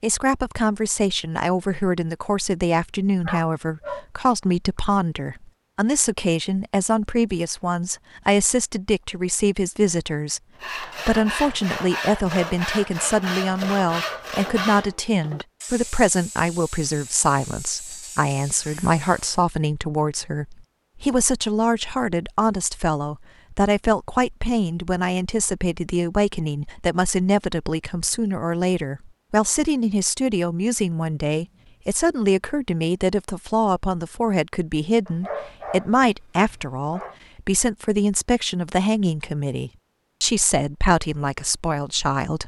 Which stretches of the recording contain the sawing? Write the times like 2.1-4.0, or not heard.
10.6-19.4.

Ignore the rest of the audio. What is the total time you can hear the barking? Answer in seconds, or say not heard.
3 s.